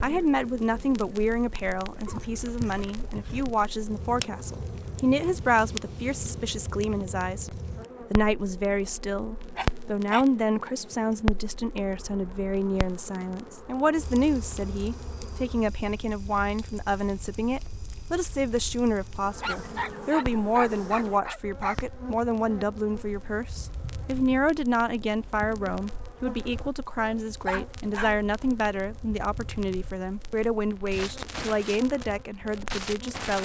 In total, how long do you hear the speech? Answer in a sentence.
The speech can be heard for 33 seconds in total.